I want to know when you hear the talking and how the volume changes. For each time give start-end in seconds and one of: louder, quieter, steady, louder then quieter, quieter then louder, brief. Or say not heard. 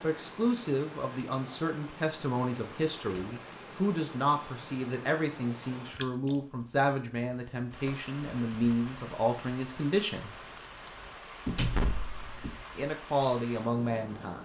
0.0-10.3 steady
12.8-14.4 brief.